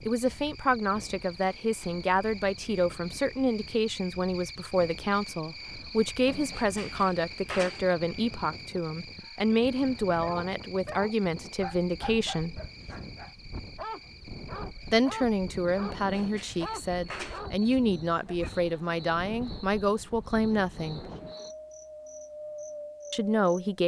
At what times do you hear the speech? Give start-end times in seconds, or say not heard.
0.1-12.6, 14.9-21.0, 23.1-23.8.